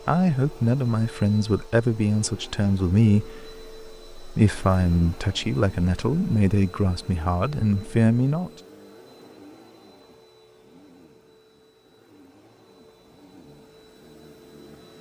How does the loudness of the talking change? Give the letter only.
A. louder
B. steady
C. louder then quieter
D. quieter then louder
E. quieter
B.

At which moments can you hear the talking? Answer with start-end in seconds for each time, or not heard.
0.1-8.5.